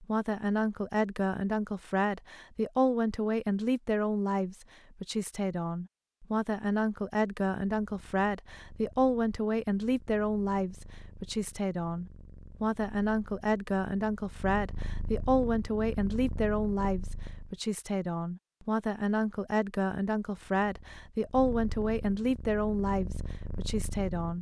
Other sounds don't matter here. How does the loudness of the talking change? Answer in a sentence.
The volume of the talking stays about the same.